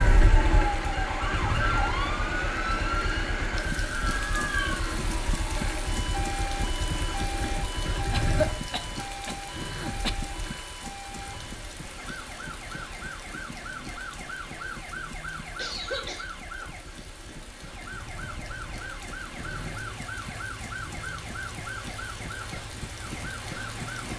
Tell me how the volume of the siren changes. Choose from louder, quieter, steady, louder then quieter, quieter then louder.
quieter.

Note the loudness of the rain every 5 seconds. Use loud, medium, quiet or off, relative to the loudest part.
loud, loud, medium, medium, medium.